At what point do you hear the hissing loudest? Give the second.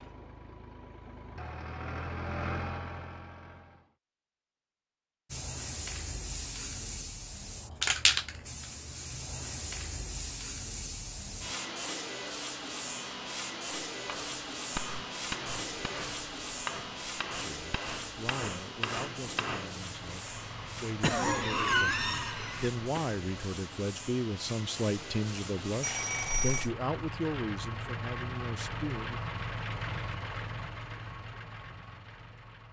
8 s.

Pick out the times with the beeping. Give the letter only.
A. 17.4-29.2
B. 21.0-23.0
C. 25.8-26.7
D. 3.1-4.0
C.